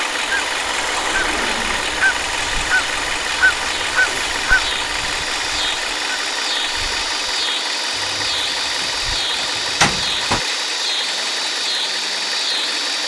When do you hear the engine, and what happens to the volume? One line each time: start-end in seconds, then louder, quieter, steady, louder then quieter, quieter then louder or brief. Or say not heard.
0.0-13.0 steady.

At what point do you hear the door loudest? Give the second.
10 s.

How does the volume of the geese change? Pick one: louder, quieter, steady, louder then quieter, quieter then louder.
louder then quieter.